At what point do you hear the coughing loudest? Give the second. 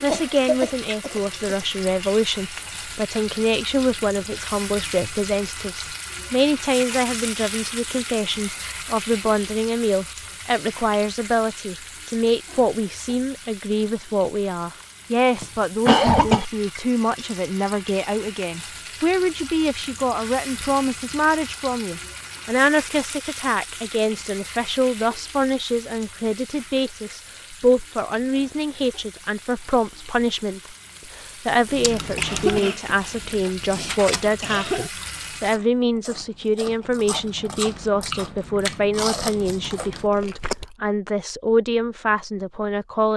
16 s.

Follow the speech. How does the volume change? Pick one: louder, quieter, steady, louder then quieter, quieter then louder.
steady.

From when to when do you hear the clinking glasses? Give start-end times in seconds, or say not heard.
not heard.